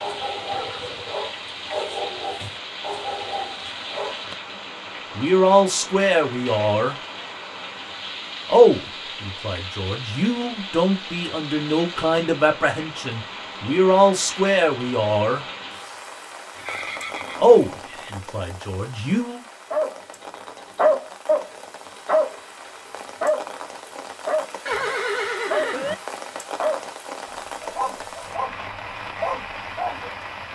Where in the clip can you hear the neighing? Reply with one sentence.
The neighing can be heard from 0.5 to 1.2 s, from 16.5 to 18.1 s and from 24.6 to 25.9 s.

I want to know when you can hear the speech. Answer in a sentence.
You can hear the speech from 5.2 to 7.0 s, from 8.4 to 15.4 s and from 17.4 to 19.4 s.